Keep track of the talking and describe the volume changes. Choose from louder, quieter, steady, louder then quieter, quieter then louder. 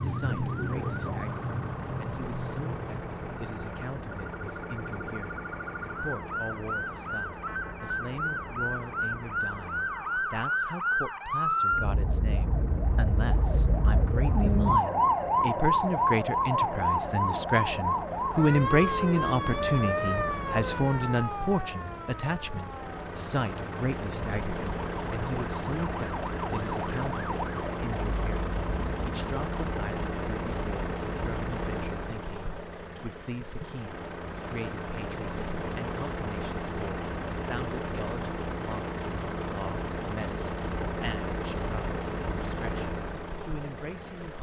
louder then quieter.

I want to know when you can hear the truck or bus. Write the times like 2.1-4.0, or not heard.
0.0-44.3.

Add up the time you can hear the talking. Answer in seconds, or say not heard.
44 s.